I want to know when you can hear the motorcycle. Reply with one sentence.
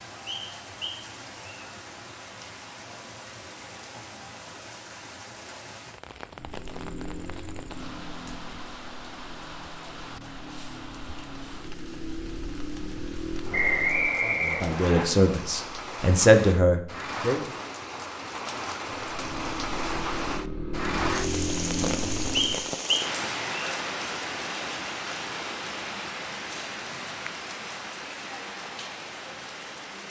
You can hear the motorcycle from 6.3 to 14.2 s and from 19.1 to 22.7 s.